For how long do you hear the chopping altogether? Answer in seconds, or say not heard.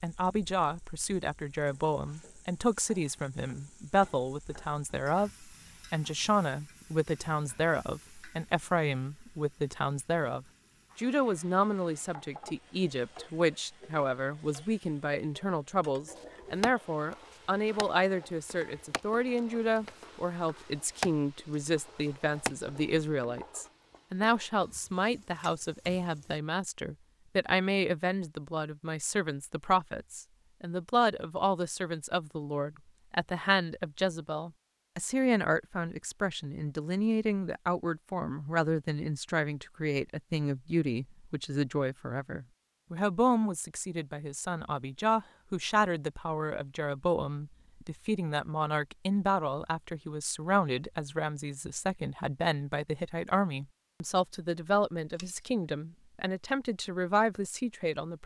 5 s.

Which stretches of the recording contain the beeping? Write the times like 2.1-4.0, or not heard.
not heard.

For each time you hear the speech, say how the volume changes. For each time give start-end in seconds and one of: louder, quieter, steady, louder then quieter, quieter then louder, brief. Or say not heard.
0.0-58.2 steady.